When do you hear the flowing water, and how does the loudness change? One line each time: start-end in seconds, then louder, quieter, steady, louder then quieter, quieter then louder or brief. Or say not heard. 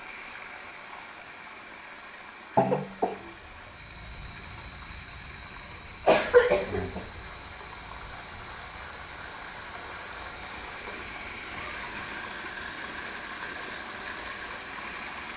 0.0-15.3 louder.